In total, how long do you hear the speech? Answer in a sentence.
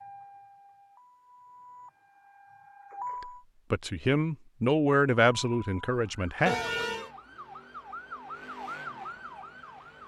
The speech can be heard for 3 seconds in total.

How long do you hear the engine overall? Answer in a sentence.
The engine can be heard for 3 seconds in total.